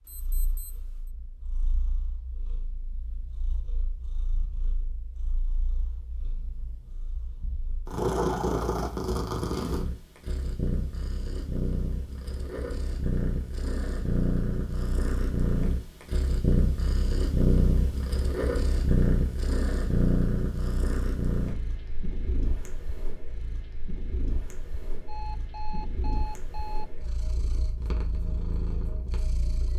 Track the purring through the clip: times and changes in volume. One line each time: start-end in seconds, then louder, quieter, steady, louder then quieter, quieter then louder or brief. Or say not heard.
0.1-29.7 louder then quieter.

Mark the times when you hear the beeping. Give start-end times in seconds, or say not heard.
0.1-1.1, 25.1-27.1.